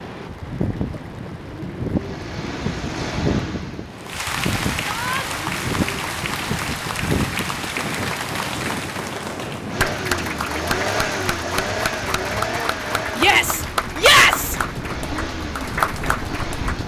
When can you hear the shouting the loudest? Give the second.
14 s.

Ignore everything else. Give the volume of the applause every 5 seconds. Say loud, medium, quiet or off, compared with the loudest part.
medium, loud, loud, loud.